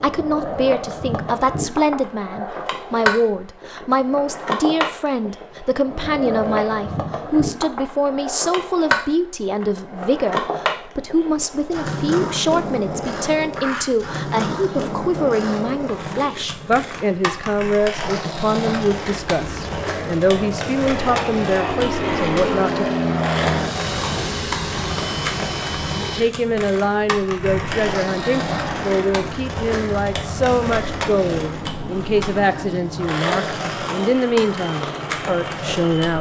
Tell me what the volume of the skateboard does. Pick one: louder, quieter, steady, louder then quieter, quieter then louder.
steady.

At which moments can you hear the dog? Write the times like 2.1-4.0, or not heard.
not heard.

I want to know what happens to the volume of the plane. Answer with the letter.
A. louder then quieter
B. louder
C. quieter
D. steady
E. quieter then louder
C.